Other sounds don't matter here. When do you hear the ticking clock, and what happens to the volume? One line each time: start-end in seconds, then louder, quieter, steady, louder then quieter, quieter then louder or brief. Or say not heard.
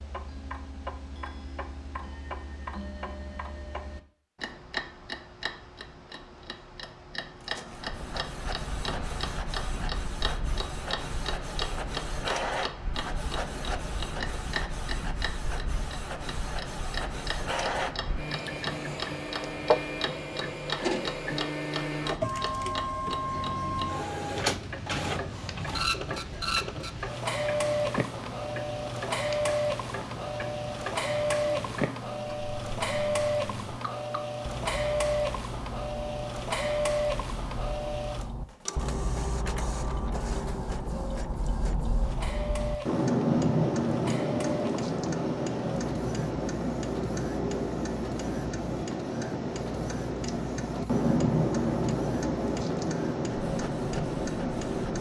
0.0-54.9 louder.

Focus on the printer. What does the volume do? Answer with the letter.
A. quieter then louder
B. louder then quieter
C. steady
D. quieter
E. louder
B.